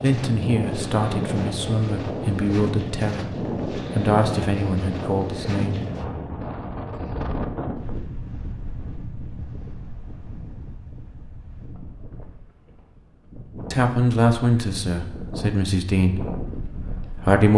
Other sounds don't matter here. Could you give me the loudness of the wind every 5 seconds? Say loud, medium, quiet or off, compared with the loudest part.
loud, loud, quiet, medium.